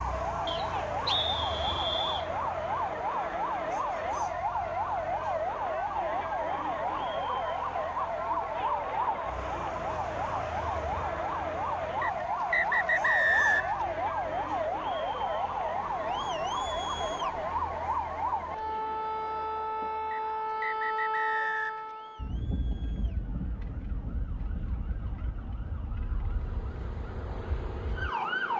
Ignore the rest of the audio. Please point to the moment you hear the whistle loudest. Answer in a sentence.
The volume of the whistle peaks at 13 seconds.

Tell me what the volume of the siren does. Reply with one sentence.
The loudness of the siren goes down.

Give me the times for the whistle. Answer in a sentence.
You can hear the whistle from 0.5 to 2.2 s, from 12.0 to 13.8 s and from 20.1 to 21.9 s.